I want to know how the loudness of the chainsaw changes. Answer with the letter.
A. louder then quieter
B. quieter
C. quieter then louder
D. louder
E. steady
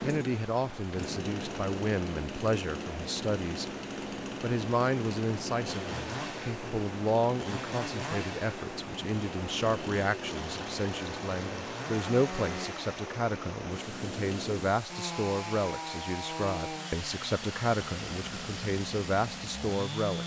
E.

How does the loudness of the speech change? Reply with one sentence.
The volume of the speech stays about the same.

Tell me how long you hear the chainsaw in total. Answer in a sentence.
You can hear the chainsaw for 20 seconds altogether.